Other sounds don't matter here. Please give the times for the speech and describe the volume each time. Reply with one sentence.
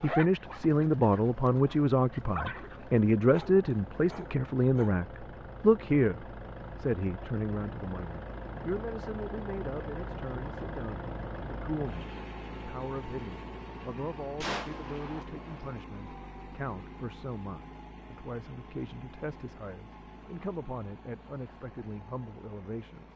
The speech can be heard from 0.0 to 23.1 s, getting quieter.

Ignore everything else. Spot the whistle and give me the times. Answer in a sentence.
The whistle can't be heard in this clip.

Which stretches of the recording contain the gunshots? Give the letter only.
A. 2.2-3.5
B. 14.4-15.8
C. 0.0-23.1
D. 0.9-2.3
B.